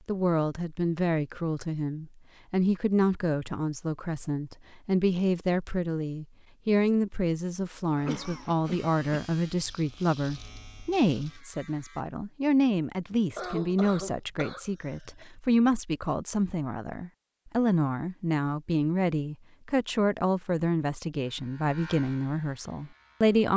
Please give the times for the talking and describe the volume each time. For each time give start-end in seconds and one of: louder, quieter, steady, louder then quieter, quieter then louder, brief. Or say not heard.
0.1-23.5 steady.